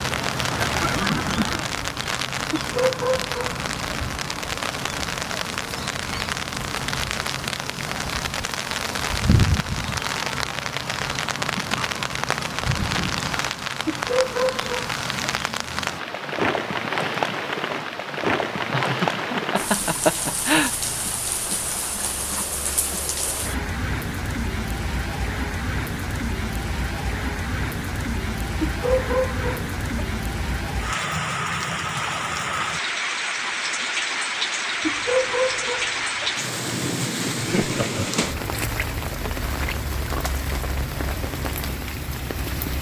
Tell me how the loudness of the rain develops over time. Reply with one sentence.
The volume of the rain stays about the same.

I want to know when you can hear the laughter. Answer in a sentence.
You can hear the laughter from 0.5 to 1.7 s, from 18.7 to 20.7 s and from 37.4 to 38.2 s.